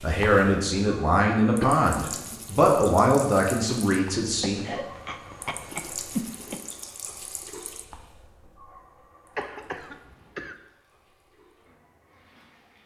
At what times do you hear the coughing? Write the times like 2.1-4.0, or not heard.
1.6-2.6, 4.4-6.6, 9.3-10.6.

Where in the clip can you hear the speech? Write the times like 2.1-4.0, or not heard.
0.0-4.7.